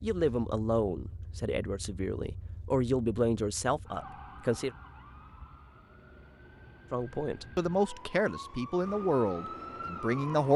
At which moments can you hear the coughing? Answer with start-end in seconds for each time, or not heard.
not heard.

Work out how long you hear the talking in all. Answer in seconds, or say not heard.
8 s.